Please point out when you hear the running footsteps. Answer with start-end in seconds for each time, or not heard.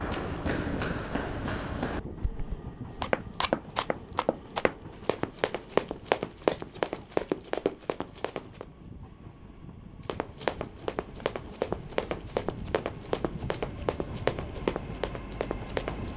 0.0-8.7, 10.1-16.1.